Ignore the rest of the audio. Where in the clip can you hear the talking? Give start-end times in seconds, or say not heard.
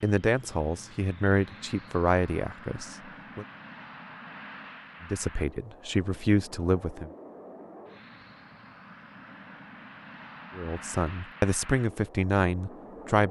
0.0-3.5, 5.0-7.1, 10.6-13.2.